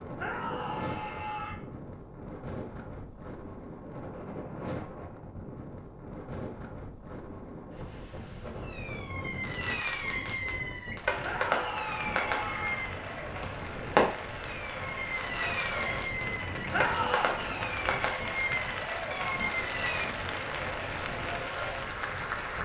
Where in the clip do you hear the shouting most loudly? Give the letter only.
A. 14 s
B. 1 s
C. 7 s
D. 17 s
D.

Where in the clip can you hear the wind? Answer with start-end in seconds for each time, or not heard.
0.0-22.5.